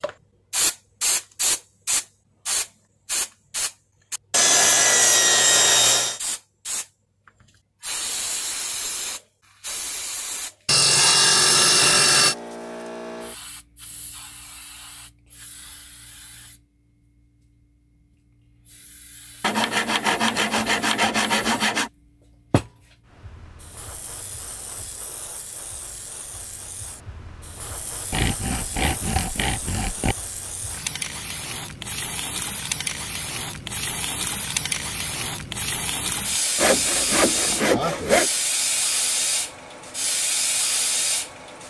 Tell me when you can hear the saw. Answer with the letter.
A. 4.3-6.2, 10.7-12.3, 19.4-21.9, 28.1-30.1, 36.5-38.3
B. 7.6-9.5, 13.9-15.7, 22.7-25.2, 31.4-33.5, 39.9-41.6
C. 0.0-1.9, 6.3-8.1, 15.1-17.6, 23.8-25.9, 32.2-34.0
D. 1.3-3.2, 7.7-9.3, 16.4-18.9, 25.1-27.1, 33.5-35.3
A.